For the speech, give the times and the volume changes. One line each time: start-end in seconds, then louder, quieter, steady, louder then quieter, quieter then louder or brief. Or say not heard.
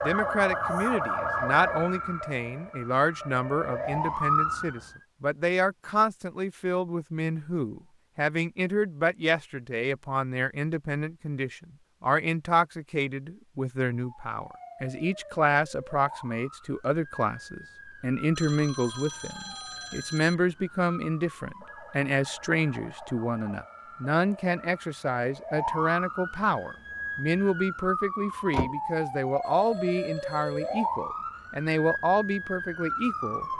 0.0-33.5 steady.